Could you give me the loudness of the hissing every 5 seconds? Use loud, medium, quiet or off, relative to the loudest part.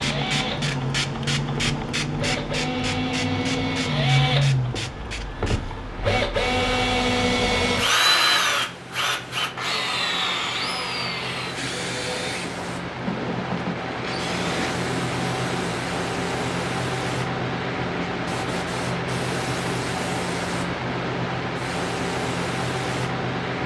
loud, quiet, medium, loud, loud.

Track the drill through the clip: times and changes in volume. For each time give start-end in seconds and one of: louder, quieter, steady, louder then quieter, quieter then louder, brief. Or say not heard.
0.0-14.8 louder then quieter.